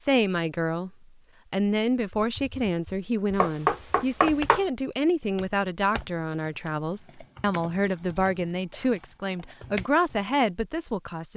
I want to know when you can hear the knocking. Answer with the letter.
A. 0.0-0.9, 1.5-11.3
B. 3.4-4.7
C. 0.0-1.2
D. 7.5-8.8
B.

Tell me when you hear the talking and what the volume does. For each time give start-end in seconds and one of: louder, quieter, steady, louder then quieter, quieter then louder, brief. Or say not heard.
0.0-0.9 brief
1.5-11.3 steady.